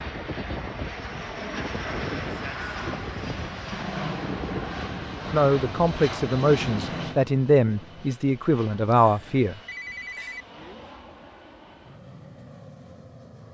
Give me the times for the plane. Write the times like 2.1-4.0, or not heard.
0.0-13.5.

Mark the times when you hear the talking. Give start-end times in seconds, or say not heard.
5.3-9.6.